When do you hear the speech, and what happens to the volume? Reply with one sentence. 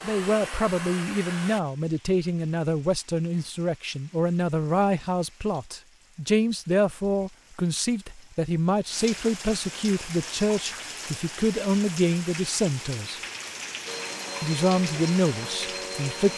The speech can be heard from 0.0 to 13.2 s, at a steady volume; and briefly from 14.4 to 16.3 s.